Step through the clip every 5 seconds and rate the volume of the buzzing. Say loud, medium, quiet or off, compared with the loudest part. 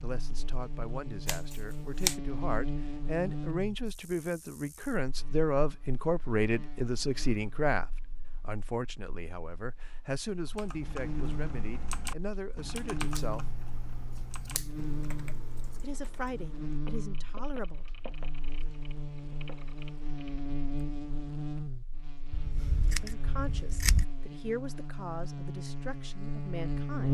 medium, quiet, medium, medium, medium, loud.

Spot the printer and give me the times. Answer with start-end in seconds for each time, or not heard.
not heard.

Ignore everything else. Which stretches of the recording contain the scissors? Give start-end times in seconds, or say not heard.
1.2-2.1, 13.1-15.8, 22.3-24.1.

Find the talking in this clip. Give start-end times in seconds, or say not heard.
0.0-13.4, 15.8-17.9, 22.9-27.0.